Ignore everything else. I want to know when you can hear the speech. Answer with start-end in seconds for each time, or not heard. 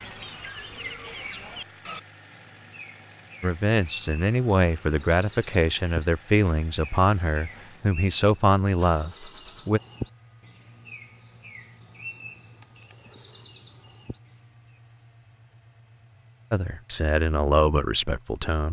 3.4-9.8, 16.5-18.6.